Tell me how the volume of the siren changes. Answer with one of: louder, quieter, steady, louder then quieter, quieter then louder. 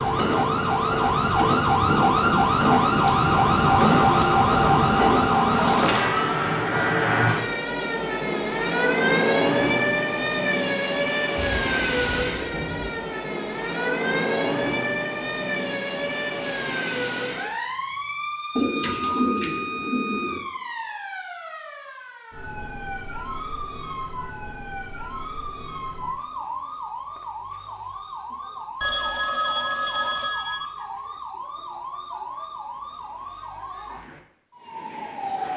quieter.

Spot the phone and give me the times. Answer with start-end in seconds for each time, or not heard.
28.8-30.7.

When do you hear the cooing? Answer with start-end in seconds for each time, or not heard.
11.3-13.0, 18.6-20.4.